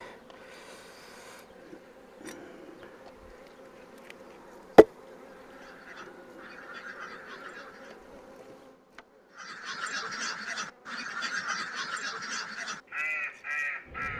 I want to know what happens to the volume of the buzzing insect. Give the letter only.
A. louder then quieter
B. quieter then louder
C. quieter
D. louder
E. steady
A.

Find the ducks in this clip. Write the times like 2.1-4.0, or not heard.
5.5-8.1, 9.3-14.1.